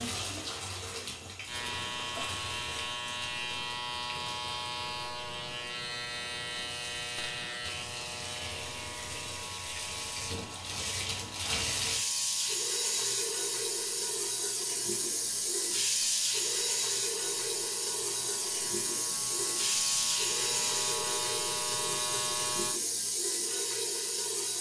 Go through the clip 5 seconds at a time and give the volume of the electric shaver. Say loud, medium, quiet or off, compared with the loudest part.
loud, loud, quiet, quiet, loud.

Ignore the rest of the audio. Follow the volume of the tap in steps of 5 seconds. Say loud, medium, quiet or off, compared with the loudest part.
medium, medium, loud, loud, loud.